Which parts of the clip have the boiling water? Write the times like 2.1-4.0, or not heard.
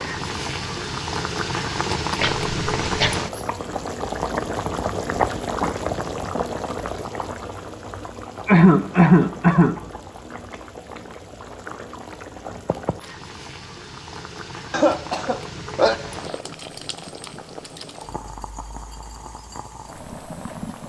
0.0-20.8.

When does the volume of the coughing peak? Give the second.
9 s.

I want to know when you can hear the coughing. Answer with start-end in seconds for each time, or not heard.
2.2-3.1, 8.4-9.8, 14.7-15.9.